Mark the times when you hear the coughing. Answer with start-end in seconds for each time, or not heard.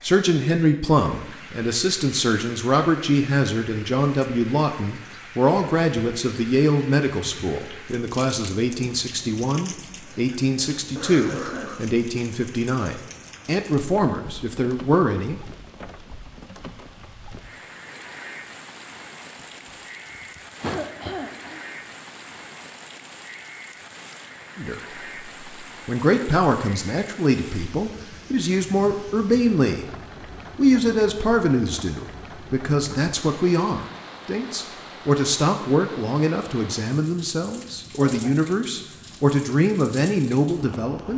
10.1-11.9, 20.1-21.6, 38.0-38.5.